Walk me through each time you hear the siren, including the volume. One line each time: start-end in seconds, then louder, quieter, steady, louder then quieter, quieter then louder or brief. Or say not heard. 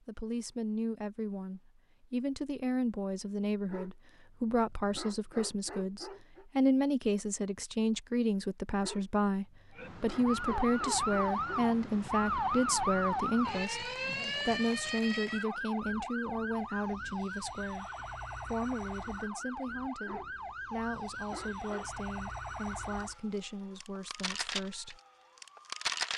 9.8-26.1 quieter.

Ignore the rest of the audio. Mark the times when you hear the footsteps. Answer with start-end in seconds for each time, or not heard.
not heard.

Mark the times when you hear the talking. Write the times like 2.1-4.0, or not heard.
0.1-17.9, 18.4-25.0.